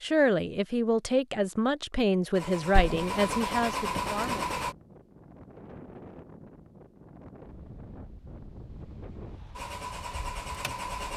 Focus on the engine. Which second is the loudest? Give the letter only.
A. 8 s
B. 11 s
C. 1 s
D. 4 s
D.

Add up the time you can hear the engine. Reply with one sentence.
The engine can be heard for 4 seconds in total.